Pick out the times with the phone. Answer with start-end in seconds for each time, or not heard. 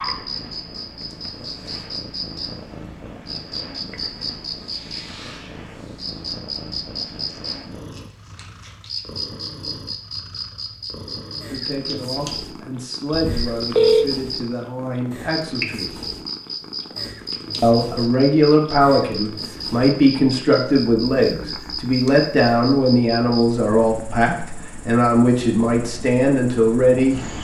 13.1-14.1.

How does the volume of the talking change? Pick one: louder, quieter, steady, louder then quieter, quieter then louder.
louder.